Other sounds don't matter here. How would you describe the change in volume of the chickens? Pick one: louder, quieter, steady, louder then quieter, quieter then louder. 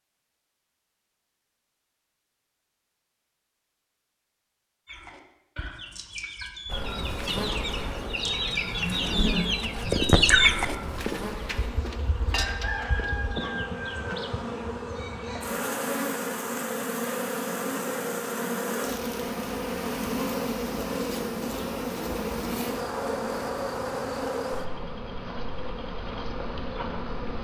louder then quieter.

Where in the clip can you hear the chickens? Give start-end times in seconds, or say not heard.
4.8-14.2.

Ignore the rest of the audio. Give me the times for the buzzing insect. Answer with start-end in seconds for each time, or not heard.
6.7-27.3.